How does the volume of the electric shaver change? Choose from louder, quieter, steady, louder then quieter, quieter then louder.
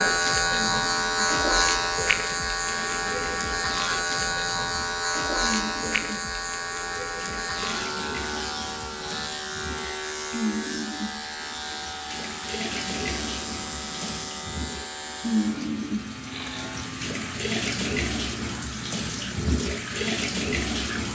quieter.